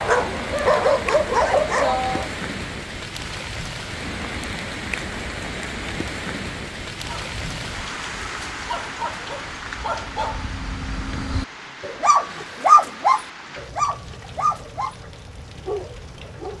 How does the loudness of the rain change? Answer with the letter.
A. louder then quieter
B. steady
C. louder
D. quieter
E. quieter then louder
D.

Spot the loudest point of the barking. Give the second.
13 s.